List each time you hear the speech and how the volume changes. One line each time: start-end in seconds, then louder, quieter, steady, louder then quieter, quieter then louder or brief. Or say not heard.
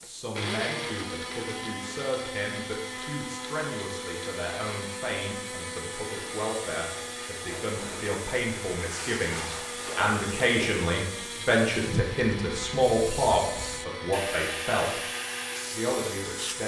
0.0-15.0 louder
15.7-16.6 brief.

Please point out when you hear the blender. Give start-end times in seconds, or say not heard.
0.0-16.6.